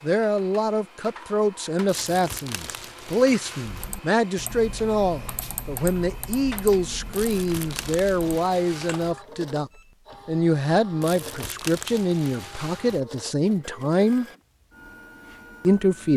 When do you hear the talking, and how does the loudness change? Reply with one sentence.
The talking can be heard from 0.0 to 14.2 s, at a steady volume; and briefly from 15.6 to 16.1 s.